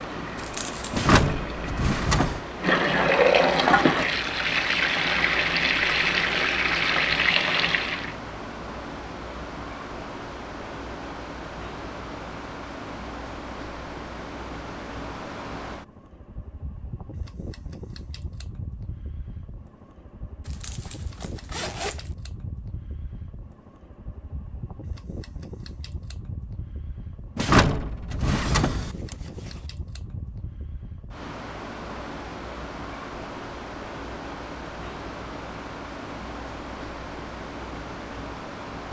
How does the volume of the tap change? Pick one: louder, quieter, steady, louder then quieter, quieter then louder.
louder.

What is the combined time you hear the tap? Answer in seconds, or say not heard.
8 s.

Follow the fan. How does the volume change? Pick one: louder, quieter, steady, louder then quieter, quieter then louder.
quieter then louder.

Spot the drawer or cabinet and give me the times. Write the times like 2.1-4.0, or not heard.
0.9-2.4, 27.4-28.9.